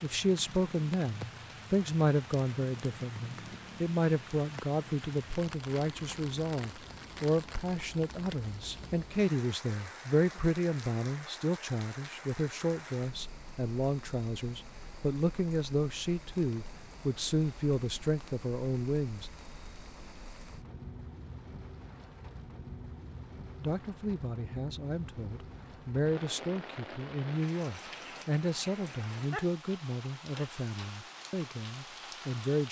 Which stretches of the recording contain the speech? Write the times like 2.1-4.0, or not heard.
0.0-19.3, 23.6-32.6.